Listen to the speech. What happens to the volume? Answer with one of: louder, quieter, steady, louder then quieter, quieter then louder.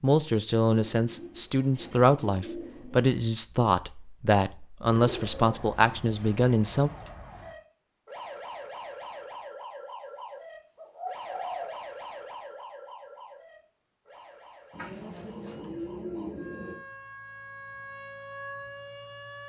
steady.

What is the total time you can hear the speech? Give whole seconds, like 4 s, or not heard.
7 s.